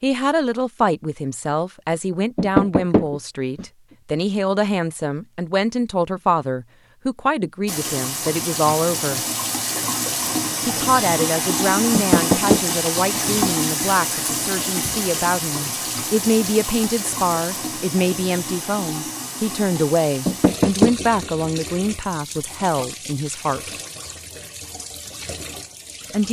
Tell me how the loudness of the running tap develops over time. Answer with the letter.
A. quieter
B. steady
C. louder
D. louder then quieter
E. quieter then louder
A.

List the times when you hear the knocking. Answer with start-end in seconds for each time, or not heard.
2.4-3.6, 11.9-13.2, 20.2-21.1.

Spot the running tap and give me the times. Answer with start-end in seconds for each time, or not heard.
7.7-26.2.